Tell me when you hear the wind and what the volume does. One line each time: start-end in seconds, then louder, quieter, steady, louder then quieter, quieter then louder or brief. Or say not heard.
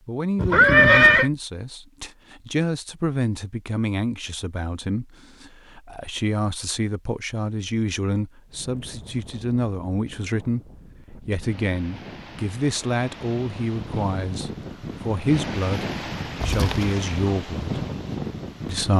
8.4-18.9 louder.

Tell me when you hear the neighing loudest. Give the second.
1 s.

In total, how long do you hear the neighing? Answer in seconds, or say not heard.
2 s.